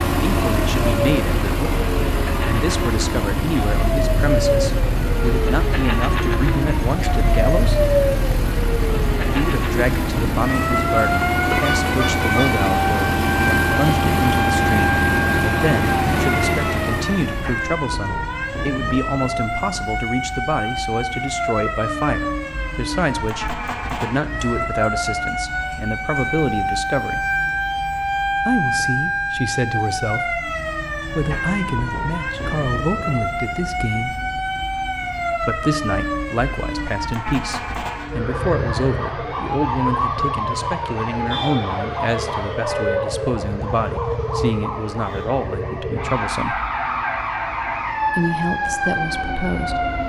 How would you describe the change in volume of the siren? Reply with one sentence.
The volume of the siren stays about the same.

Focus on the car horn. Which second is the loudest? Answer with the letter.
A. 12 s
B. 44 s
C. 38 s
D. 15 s
A.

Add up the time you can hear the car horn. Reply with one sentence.
The car horn can be heard for 2 seconds in total.